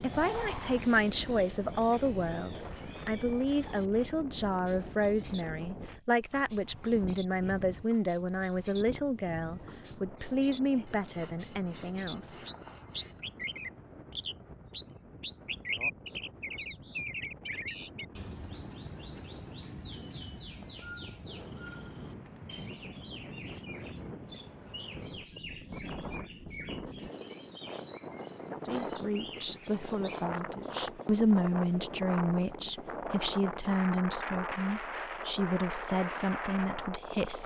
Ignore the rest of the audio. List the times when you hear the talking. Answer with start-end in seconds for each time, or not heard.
0.0-12.5, 28.6-37.4.